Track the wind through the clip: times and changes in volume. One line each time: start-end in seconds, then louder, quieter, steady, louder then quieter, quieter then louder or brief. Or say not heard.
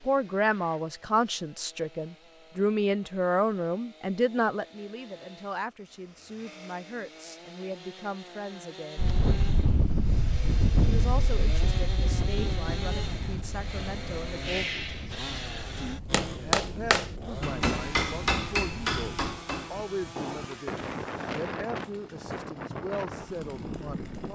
8.9-24.3 quieter then louder.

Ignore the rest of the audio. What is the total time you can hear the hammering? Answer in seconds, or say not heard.
5 s.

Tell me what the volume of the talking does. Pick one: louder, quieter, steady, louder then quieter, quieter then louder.
quieter.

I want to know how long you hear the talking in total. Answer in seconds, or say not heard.
22 s.